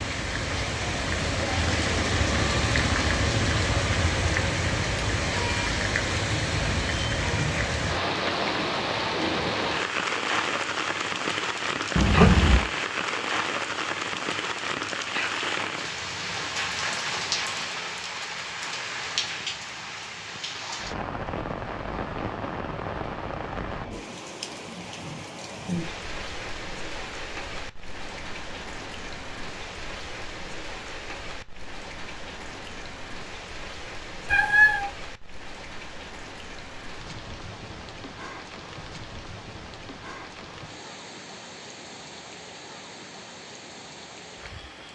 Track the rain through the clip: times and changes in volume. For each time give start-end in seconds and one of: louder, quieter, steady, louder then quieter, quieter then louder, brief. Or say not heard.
0.0-44.9 quieter.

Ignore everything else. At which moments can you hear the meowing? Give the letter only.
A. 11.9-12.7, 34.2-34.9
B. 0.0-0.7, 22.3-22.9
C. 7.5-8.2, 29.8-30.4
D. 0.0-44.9
A.